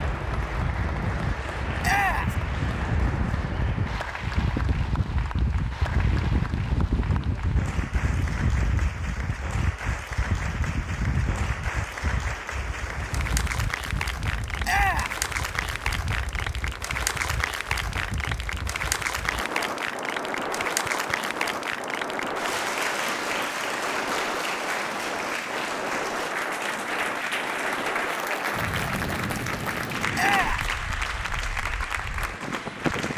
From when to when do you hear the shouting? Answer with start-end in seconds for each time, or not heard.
1.8-2.4, 14.6-15.2, 30.1-30.7.